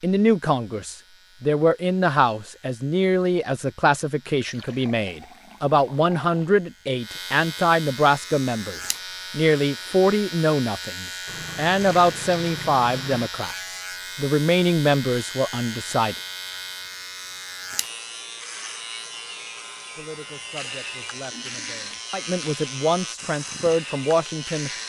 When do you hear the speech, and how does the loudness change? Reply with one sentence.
You can hear the speech from 0.0 to 16.1 s, at a steady volume; and from 19.9 to 24.7 s, getting louder.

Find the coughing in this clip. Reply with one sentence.
The coughing can't be heard in this clip.